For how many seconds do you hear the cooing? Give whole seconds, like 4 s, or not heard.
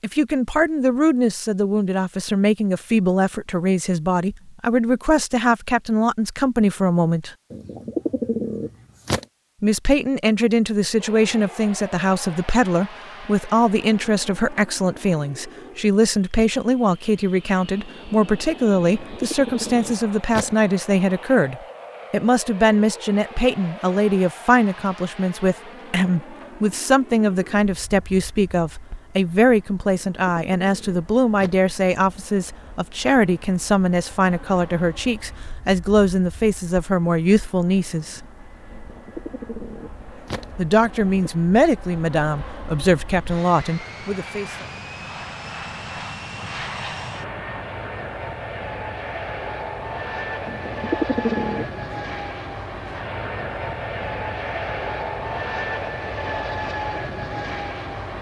9 s.